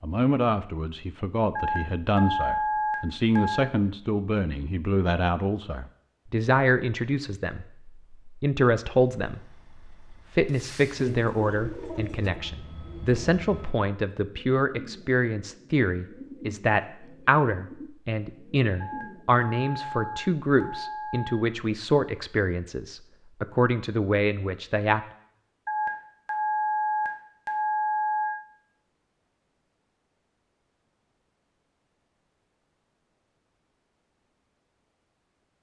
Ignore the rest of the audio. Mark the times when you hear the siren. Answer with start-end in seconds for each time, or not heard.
not heard.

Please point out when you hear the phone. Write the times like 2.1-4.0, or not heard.
1.6-3.6, 18.8-21.4, 25.6-28.4.